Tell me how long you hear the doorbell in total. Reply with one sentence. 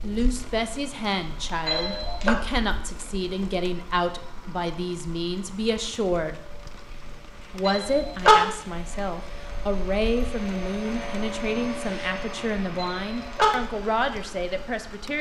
You can hear the doorbell for 2 seconds altogether.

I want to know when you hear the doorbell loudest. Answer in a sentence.
The loudest moment of the doorbell is at 8 seconds.